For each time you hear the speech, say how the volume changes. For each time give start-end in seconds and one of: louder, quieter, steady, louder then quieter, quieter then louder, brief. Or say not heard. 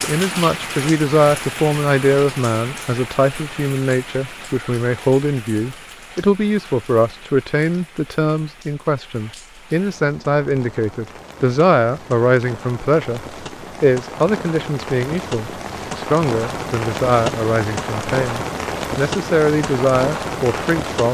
0.0-21.1 steady.